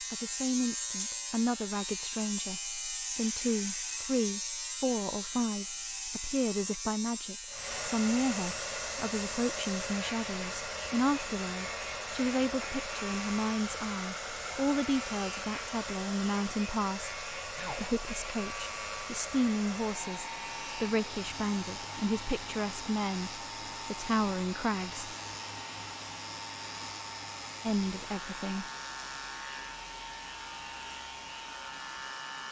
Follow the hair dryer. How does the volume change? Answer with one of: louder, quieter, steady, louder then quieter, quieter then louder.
quieter.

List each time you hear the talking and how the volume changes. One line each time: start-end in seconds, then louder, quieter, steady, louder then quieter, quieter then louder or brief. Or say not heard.
0.1-25.1 steady
27.6-28.6 brief.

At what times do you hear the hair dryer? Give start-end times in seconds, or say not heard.
7.5-32.4.